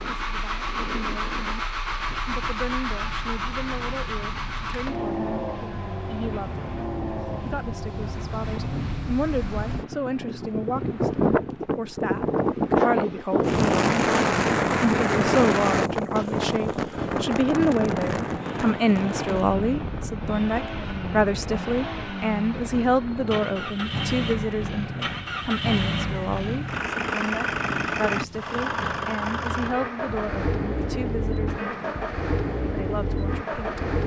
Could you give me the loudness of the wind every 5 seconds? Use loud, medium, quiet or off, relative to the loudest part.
quiet, quiet, loud, loud, quiet, quiet, quiet.